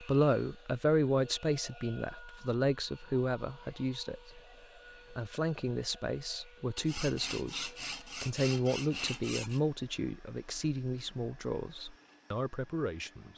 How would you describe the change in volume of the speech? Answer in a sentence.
The volume of the speech goes down.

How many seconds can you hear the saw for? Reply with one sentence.
You can hear the saw for 3 seconds altogether.